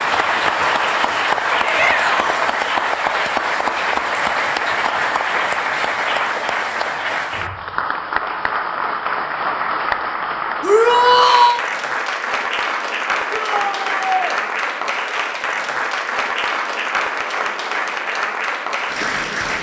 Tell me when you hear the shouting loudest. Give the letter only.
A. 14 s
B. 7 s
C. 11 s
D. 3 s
C.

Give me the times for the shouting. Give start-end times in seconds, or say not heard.
1.6-2.5, 10.6-11.6, 13.3-14.3.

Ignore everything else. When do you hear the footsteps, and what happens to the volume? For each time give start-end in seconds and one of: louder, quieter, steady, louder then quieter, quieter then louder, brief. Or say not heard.
not heard.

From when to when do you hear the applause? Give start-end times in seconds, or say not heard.
0.0-19.5.